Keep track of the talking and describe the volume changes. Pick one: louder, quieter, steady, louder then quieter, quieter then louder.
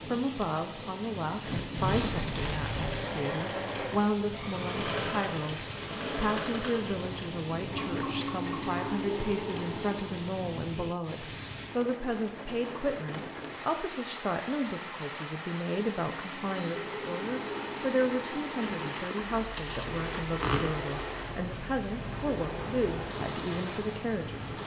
steady.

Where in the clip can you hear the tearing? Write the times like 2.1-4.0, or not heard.
1.4-3.2, 18.8-20.7.